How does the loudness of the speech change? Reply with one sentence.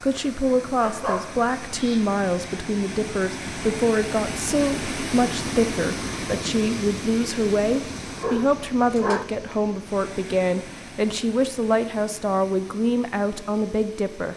The loudness of the speech stays about the same.